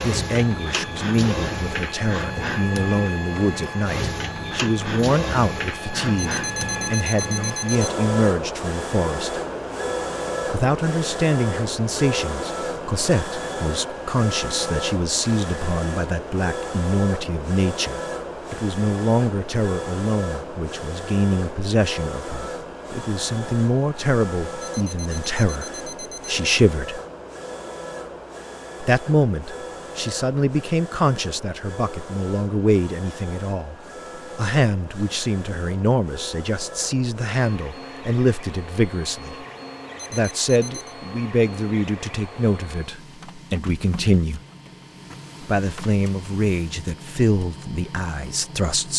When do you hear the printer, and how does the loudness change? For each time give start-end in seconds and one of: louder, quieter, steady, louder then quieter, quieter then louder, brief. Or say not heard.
0.0-48.9 quieter.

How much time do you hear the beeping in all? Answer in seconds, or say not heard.
4 s.